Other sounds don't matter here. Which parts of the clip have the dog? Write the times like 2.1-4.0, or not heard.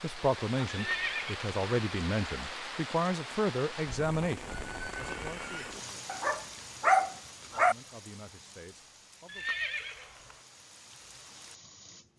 6.0-7.8.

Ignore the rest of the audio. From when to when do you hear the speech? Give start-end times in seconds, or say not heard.
0.0-6.1, 7.4-9.4.